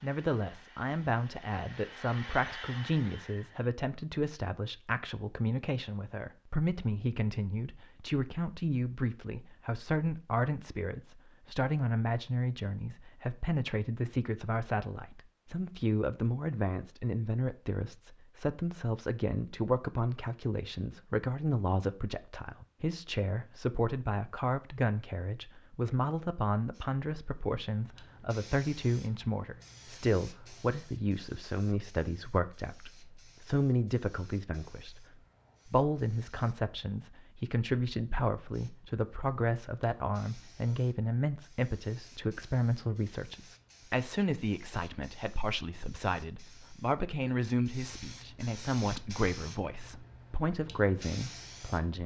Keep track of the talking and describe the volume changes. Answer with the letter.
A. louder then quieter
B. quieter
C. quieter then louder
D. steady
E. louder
D.